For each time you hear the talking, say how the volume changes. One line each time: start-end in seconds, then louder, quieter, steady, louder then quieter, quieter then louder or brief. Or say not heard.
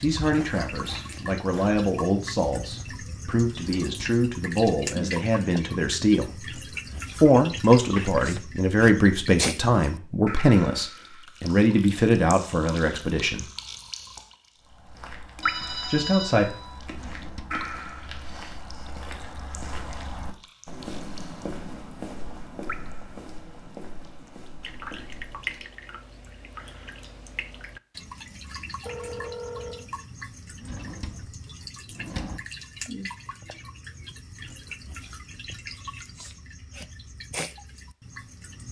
0.0-6.5 louder
7.2-13.5 steady
15.8-16.4 brief.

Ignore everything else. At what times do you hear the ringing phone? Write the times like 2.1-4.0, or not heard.
7.8-8.4, 15.4-16.8, 28.9-29.9.